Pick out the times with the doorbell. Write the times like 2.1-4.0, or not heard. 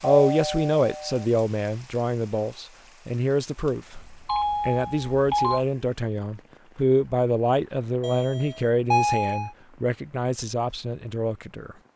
0.1-1.2, 4.2-5.7, 8.0-9.5.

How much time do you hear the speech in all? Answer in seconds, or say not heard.
12 s.